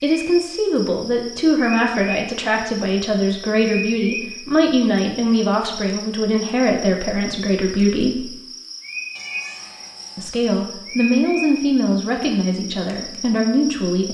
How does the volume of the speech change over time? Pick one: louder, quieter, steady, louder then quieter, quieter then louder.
steady.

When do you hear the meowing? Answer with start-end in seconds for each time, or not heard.
9.2-10.3.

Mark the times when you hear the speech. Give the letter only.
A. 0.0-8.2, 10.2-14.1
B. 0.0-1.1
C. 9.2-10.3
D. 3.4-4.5
A.